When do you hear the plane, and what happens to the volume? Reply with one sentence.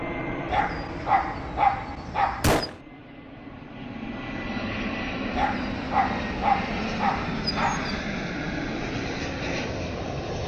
You can hear the plane from 0.0 to 10.4 s, getting louder.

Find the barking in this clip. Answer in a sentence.
The barking can be heard from 0.5 to 2.6 s and from 5.3 to 8.0 s.